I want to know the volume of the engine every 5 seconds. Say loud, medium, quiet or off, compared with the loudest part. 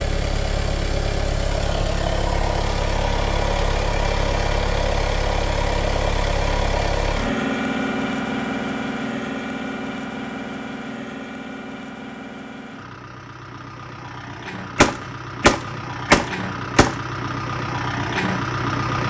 loud, loud, medium, loud.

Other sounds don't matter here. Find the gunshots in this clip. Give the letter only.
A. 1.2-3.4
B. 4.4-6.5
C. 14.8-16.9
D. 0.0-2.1
C.